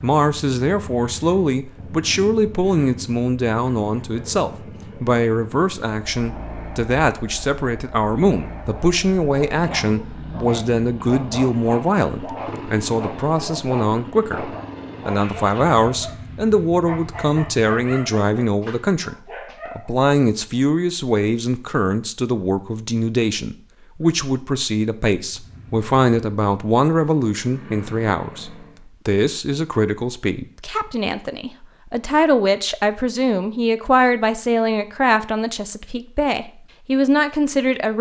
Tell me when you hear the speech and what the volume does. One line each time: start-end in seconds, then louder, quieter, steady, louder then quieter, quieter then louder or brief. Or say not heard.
0.0-37.9 steady.